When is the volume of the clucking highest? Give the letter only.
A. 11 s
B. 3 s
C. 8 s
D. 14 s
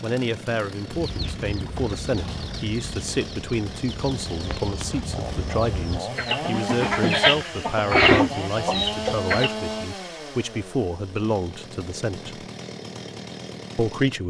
C.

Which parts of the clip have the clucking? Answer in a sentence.
The clucking can be heard from 0.8 to 9.6 s.